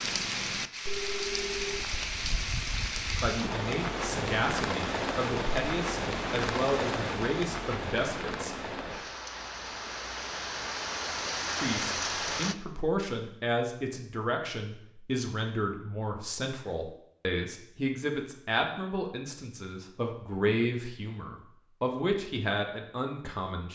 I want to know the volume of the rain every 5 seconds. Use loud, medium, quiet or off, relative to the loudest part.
loud, loud, loud, off, off.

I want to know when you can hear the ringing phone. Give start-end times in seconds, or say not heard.
0.8-1.9.